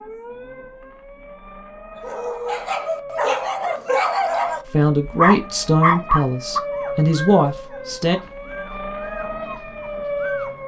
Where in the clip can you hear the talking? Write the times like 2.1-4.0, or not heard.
4.7-8.2.